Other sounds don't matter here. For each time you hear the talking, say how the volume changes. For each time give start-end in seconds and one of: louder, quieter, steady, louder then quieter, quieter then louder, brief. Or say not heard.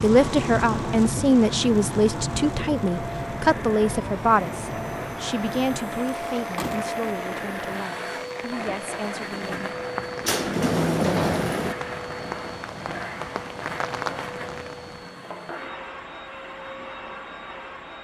0.0-9.8 quieter.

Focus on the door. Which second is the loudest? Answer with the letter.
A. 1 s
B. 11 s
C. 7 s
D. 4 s
B.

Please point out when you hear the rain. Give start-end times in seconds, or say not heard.
0.0-15.2.